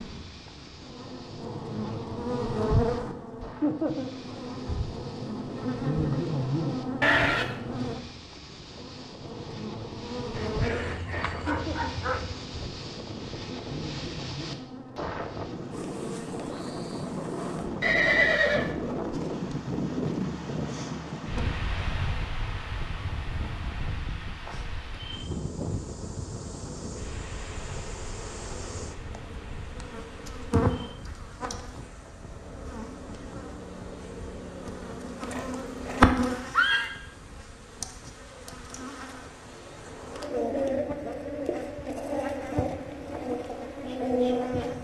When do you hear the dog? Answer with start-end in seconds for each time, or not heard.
10.3-12.3.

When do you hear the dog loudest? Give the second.
12 s.